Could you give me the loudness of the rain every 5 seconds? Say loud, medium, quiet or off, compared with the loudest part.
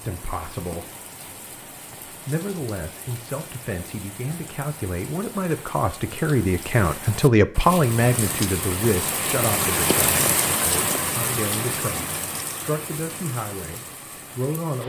quiet, loud, loud.